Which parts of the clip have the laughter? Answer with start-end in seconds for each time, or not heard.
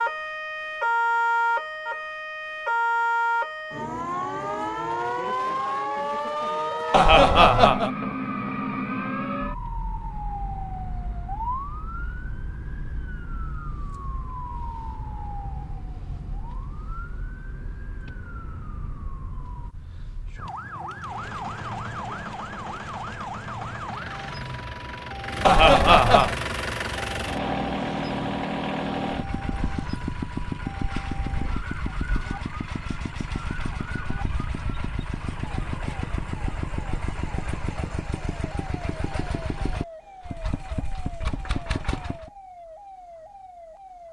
6.9-7.9, 25.4-26.4.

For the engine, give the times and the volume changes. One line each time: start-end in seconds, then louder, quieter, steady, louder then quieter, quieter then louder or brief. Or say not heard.
21.0-42.3 louder then quieter.